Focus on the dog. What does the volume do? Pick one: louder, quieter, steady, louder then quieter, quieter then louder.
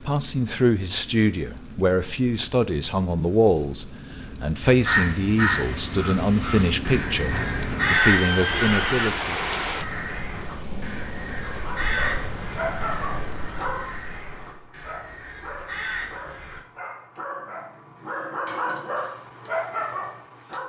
quieter then louder.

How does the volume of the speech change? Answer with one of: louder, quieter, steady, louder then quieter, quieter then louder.
steady.